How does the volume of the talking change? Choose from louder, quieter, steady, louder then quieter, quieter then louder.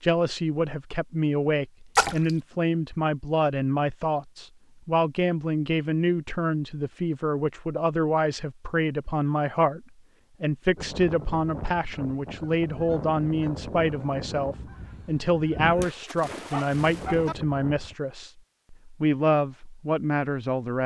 steady.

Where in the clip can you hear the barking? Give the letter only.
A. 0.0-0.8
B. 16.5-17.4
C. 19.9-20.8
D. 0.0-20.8
B.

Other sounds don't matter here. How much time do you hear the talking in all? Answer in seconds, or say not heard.
21 s.